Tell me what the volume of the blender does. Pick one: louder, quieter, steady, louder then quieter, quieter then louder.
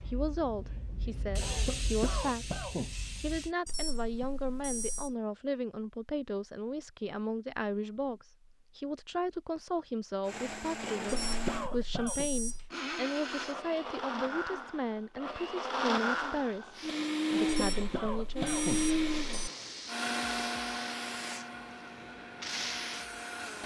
louder then quieter.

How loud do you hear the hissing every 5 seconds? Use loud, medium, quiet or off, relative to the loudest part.
loud, off, off, loud, loud.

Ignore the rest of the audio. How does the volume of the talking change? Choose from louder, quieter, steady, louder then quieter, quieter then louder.
steady.